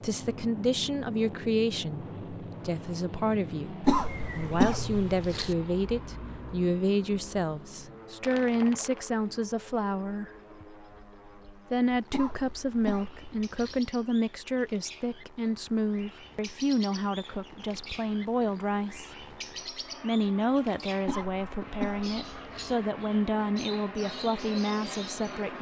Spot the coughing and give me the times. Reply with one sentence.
You can hear the coughing from 3.8 to 5.5 s, from 12.1 to 13.8 s and from 21.1 to 22.8 s.